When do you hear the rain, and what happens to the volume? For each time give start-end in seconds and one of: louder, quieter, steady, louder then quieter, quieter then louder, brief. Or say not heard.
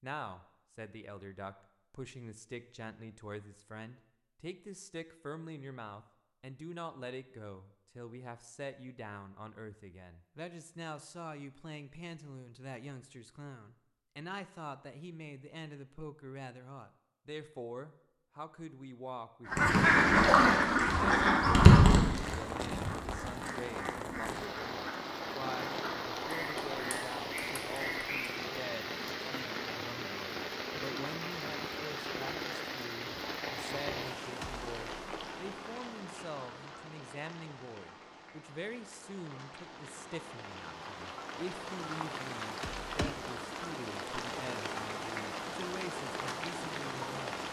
21.9-47.4 quieter then louder.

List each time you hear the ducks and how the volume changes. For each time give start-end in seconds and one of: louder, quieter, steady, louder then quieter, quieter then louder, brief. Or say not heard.
19.5-28.4 quieter.